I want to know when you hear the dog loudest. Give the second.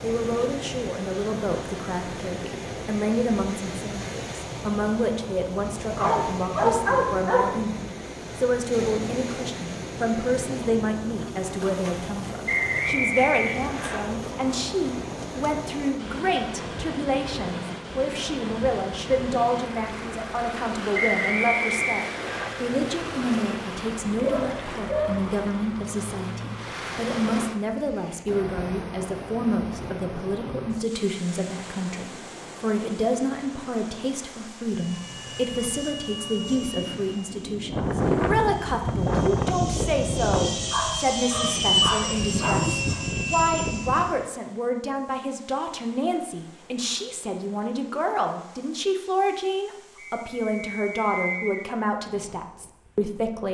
7 s.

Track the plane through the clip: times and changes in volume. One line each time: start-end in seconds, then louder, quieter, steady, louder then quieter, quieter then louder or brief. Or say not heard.
22.6-24.6 brief
34.5-44.2 louder.